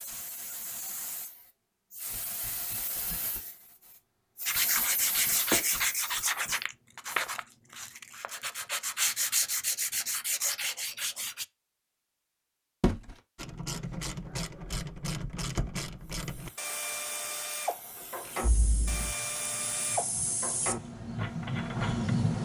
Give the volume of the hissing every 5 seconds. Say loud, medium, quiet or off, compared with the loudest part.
medium, medium, off, quiet, loud.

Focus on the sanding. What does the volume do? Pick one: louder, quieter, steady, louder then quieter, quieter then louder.
quieter then louder.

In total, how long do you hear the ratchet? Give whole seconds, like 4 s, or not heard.
9 s.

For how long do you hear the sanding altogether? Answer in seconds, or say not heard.
7 s.